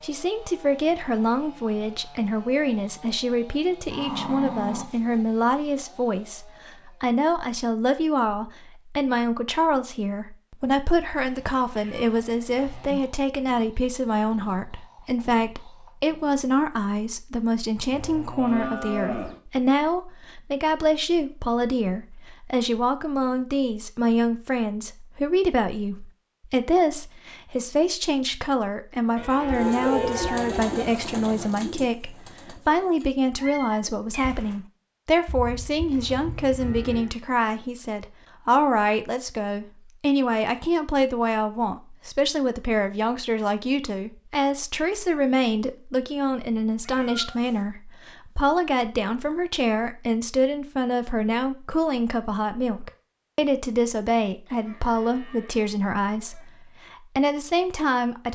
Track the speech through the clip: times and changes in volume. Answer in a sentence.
You can hear the speech from 0.0 to 58.3 s, at a steady volume.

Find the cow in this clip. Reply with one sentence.
The cow can be heard from 3.9 to 5.2 s, from 17.9 to 19.4 s, from 29.1 to 30.9 s, from 35.2 to 37.1 s and from 54.5 to 56.5 s.